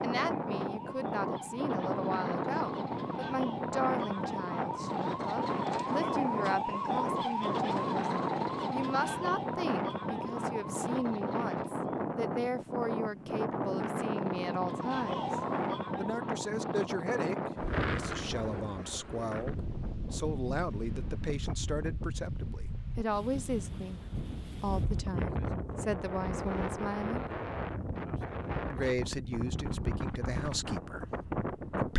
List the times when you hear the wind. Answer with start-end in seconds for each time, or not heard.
0.0-31.9.